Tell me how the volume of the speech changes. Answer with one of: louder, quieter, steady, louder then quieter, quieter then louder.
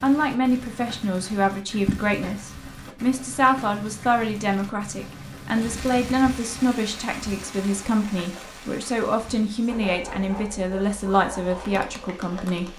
steady.